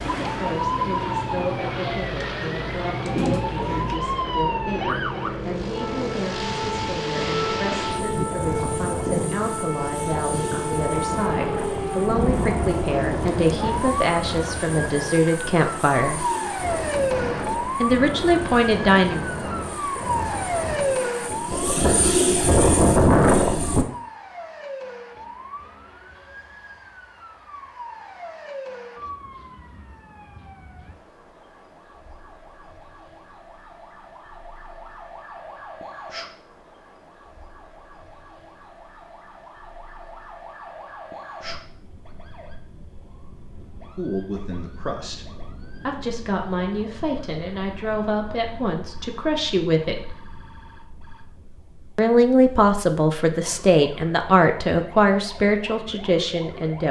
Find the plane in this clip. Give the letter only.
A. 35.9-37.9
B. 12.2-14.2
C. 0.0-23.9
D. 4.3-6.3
C.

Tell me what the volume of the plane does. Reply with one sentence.
The volume of the plane goes up.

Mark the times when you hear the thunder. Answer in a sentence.
You can hear the thunder from 12.2 to 14.2 s.